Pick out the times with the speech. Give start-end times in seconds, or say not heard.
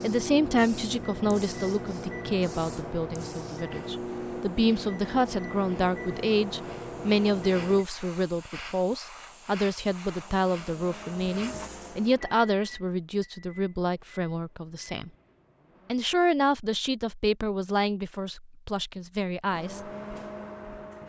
0.0-15.1, 15.9-19.8.